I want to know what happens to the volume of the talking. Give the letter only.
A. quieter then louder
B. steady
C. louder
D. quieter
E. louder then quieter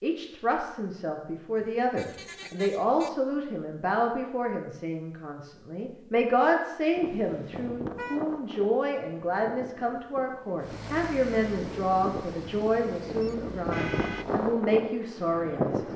B.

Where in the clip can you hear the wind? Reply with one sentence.
You can hear the wind from 7.0 to 15.9 s.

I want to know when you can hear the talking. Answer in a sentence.
The talking can be heard from 0.0 to 15.8 s.